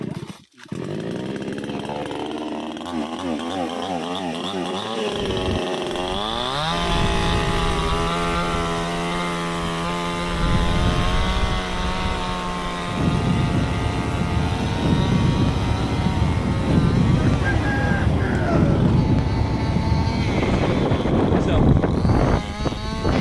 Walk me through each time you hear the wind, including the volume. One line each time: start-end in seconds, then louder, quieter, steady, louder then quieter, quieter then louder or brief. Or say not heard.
5.1-23.1 louder.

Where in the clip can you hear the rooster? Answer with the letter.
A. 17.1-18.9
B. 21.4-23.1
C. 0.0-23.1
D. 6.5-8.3
A.